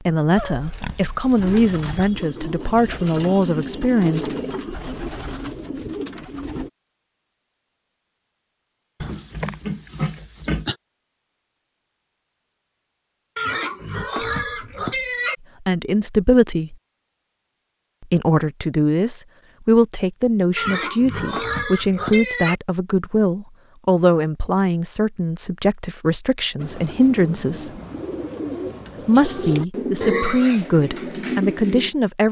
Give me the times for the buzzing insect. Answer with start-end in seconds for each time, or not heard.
not heard.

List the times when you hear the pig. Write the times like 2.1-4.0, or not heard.
0.3-1.6, 9.0-10.8, 13.3-15.3, 20.6-22.6, 30.0-30.7.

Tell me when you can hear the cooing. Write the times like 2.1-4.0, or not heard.
1.4-6.7, 26.6-31.9.